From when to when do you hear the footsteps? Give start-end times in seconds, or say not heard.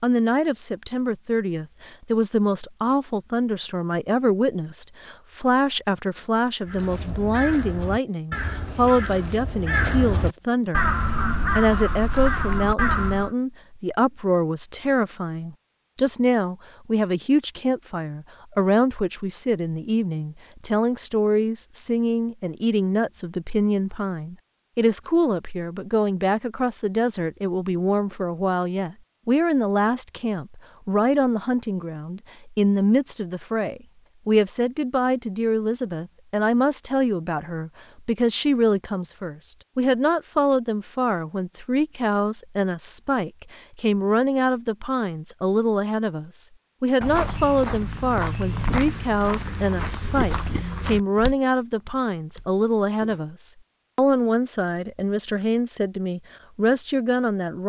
47.0-53.2.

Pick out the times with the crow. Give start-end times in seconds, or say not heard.
6.7-13.3.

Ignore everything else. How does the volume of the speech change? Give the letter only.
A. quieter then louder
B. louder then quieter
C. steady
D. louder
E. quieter
C.